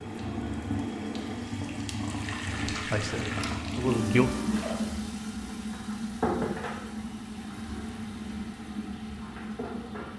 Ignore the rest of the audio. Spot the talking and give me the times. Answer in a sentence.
The talking can be heard from 2.7 to 4.3 s.